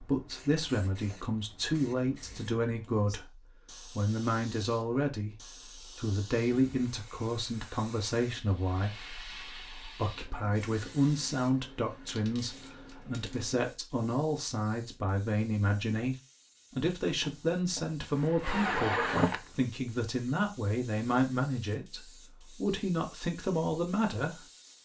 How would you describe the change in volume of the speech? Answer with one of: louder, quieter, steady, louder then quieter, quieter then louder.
steady.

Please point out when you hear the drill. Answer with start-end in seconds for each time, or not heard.
17.2-19.5.